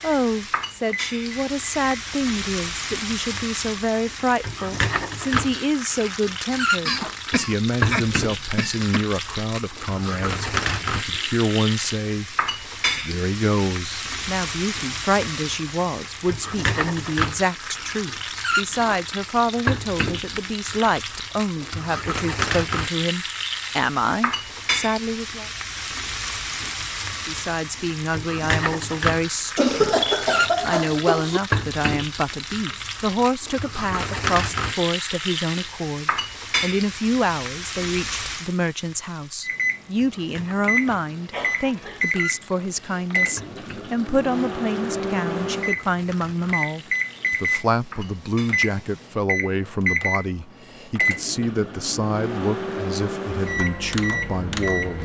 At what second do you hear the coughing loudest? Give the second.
30 s.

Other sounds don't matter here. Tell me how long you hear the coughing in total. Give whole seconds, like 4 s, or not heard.
5 s.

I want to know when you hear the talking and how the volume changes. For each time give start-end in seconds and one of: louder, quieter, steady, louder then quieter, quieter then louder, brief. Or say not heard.
0.0-25.5 steady
27.2-29.9 brief
30.6-55.0 steady.